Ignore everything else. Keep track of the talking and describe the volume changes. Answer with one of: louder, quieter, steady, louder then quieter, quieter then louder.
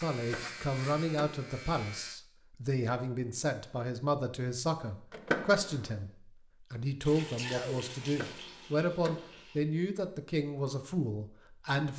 steady.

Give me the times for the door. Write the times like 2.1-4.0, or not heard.
0.1-1.4, 5.1-5.9, 8.0-9.4.